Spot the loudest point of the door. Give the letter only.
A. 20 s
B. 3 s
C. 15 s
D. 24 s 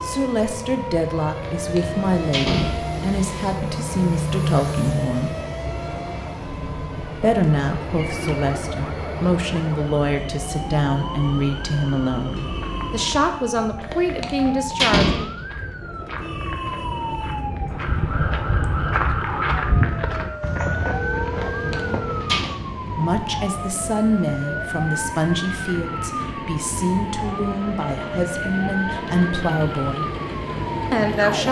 C.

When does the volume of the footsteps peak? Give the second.
20 s.